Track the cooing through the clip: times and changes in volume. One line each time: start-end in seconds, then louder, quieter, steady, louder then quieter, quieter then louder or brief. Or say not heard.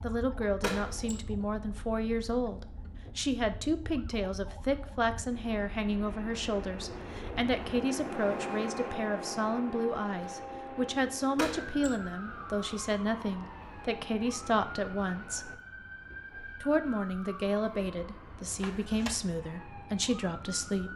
not heard.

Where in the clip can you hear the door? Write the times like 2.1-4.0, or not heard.
0.6-1.2, 11.3-12.0, 18.6-19.2.